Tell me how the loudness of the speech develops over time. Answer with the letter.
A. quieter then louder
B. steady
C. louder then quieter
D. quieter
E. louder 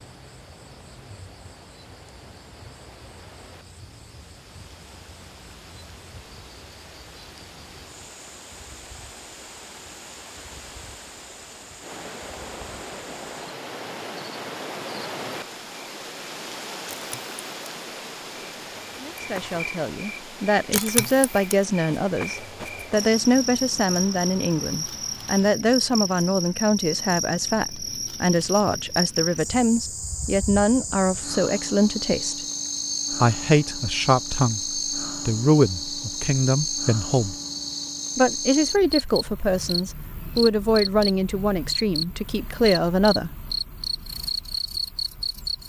B.